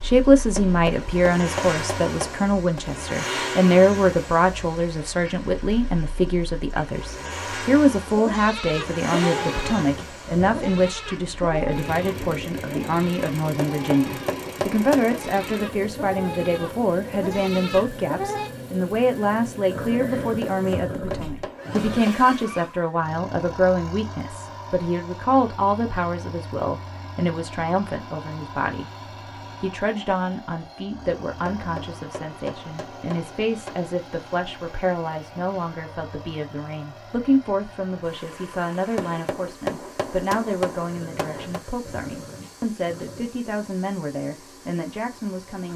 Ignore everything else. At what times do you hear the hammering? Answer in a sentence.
The hammering can be heard from 0.6 to 2.8 s, from 13.7 to 15.2 s, from 20.4 to 22.2 s, from 31.4 to 33.9 s and from 39.0 to 41.6 s.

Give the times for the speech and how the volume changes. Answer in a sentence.
The speech can be heard from 0.0 to 45.7 s, getting quieter.